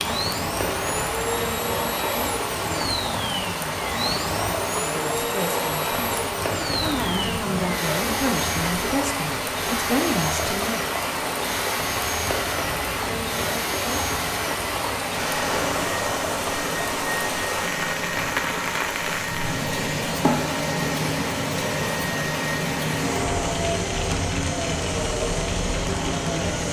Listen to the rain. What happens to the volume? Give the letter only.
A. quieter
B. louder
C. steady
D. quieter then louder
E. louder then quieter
C.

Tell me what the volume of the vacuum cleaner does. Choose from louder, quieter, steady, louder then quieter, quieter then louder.
steady.